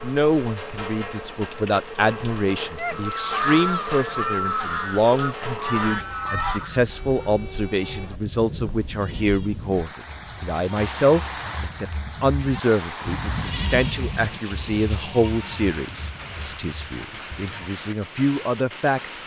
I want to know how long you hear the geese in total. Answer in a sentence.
You can hear the geese for 4 seconds altogether.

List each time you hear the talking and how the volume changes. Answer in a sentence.
The talking can be heard from 0.0 to 19.1 s, at a steady volume.